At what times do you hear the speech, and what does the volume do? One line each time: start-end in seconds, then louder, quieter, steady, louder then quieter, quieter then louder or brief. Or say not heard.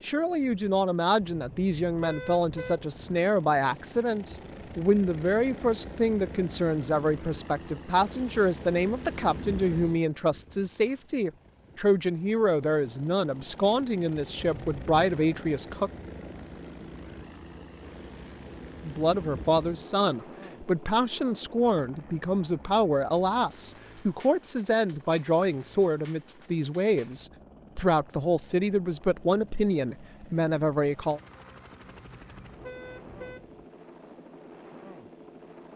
0.0-15.9 steady
18.8-31.2 steady.